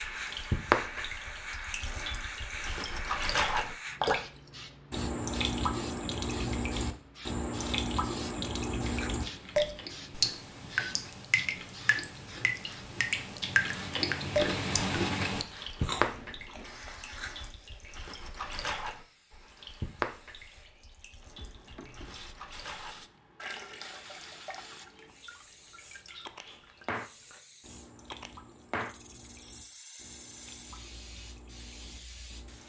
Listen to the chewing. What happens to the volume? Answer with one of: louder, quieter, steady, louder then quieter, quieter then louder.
louder then quieter.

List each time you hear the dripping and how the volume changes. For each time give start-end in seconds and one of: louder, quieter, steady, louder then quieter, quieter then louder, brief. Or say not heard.
0.0-32.6 quieter.